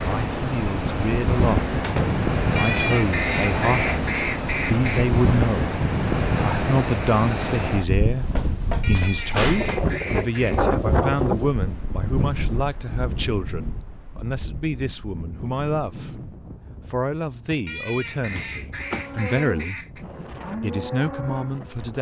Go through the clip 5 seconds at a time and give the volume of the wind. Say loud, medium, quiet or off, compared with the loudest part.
loud, loud, loud, quiet, quiet.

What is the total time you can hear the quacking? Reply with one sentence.
You can hear the quacking for 7 seconds altogether.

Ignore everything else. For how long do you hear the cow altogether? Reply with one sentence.
You can hear the cow for 3 seconds altogether.